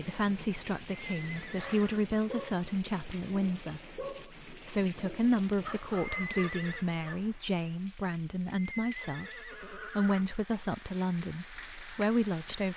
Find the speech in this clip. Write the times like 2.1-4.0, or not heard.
0.0-12.7.